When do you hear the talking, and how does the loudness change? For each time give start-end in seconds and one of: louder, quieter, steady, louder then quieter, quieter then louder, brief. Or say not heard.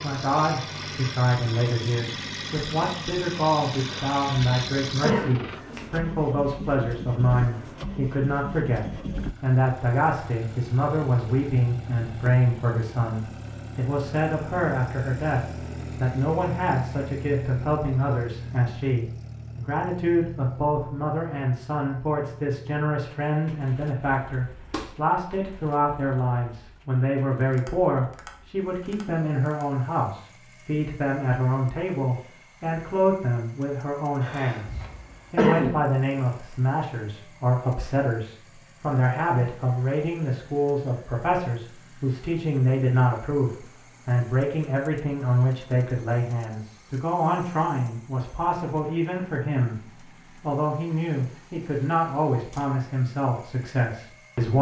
0.0-54.5 steady.